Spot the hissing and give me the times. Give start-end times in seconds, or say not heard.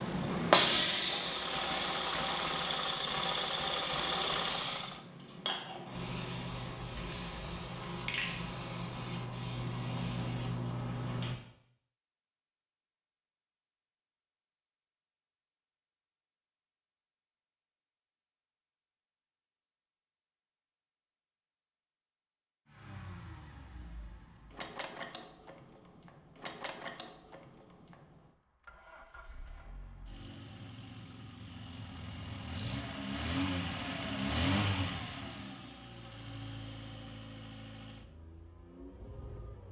0.0-11.3.